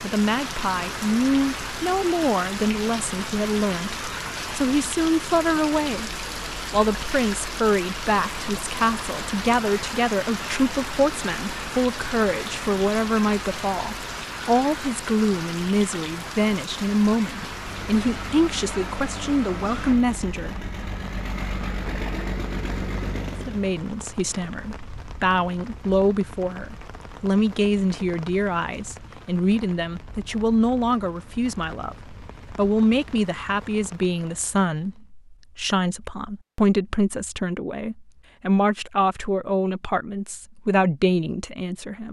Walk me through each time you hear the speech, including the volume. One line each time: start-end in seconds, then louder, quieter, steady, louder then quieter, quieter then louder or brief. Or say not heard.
0.0-20.6 steady
23.4-42.0 steady.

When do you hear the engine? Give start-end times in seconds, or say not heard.
17.5-23.8.